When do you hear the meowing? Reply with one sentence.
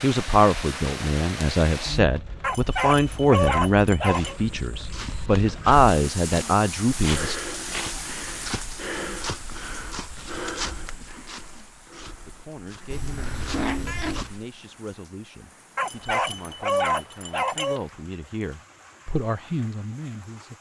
The meowing can be heard from 12.9 to 14.3 s.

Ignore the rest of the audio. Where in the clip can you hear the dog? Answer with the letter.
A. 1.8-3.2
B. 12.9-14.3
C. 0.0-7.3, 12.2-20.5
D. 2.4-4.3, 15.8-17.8
D.